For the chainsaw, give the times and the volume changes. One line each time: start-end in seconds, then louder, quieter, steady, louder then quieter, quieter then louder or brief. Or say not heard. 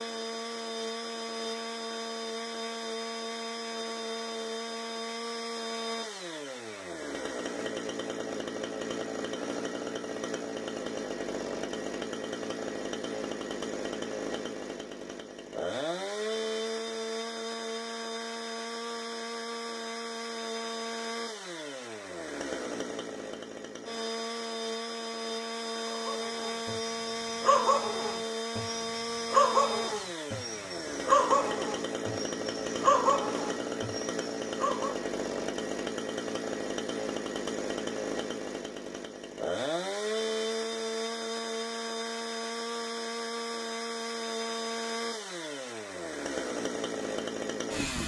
0.0-48.0 steady.